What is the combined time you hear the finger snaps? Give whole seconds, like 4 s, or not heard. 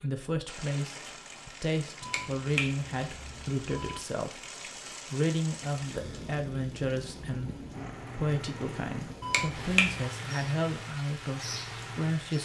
3 s.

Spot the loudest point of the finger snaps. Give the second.
10 s.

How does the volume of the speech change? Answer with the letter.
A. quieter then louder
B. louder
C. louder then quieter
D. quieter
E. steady
E.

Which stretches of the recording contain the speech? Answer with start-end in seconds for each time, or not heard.
0.0-4.5, 5.1-12.4.